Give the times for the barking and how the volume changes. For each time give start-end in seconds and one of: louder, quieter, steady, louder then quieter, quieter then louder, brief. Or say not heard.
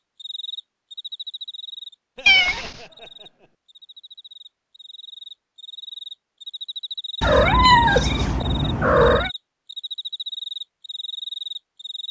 not heard.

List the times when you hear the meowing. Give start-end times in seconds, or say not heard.
2.2-2.8, 7.2-9.3.